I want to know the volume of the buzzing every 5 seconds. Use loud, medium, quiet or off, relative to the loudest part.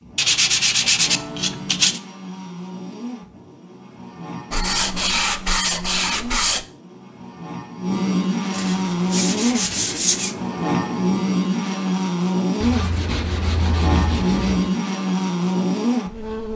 quiet, loud, loud, loud.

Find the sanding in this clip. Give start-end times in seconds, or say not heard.
0.1-2.0, 4.5-6.7, 8.5-10.3, 12.6-14.8.